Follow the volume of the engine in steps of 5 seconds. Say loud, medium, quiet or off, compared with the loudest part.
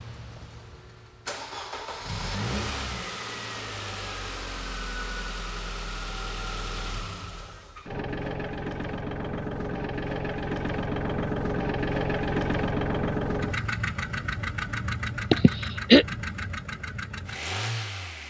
medium, medium, loud, medium.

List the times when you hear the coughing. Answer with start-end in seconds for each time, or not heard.
15.3-16.1.